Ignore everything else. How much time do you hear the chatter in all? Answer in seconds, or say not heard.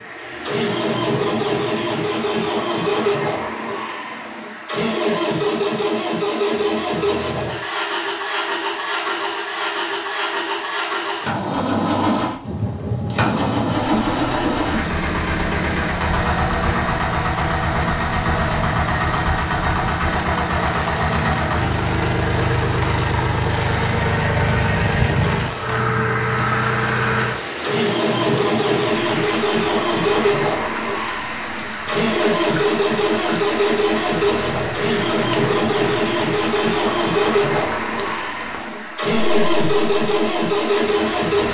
not heard.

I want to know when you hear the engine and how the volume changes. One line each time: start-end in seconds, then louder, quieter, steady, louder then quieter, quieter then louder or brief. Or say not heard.
0.0-41.4 steady.